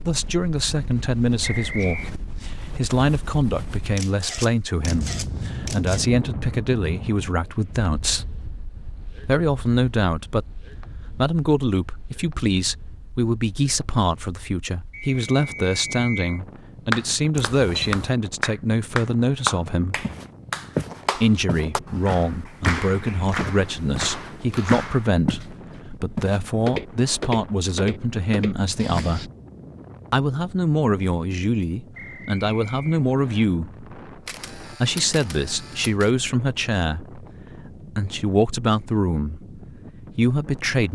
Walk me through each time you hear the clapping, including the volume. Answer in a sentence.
You can hear the clapping from 16.9 to 25.1 s, getting quieter.